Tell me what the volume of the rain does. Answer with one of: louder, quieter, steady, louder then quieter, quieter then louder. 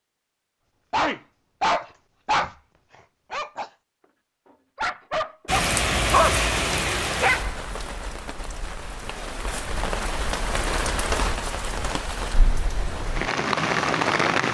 quieter then louder.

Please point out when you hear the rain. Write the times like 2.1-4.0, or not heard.
5.5-14.5.